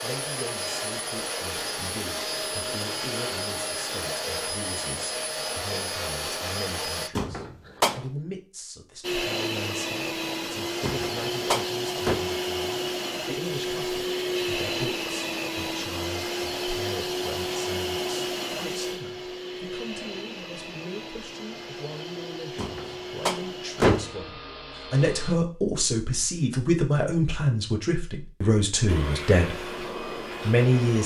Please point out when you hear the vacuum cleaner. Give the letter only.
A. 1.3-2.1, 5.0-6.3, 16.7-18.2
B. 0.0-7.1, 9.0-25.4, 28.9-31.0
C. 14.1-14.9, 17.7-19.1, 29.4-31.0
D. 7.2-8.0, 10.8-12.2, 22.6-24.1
B.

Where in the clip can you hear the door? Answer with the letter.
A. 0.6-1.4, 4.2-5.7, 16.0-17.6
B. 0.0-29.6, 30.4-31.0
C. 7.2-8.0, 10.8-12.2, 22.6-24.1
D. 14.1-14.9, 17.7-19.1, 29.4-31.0
C.